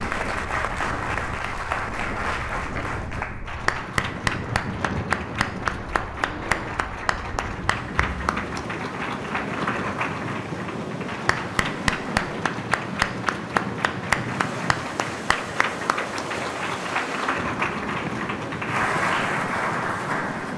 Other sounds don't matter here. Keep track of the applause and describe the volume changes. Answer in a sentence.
The volume of the applause stays about the same.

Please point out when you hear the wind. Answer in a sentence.
The wind can be heard from 0.0 to 20.5 s.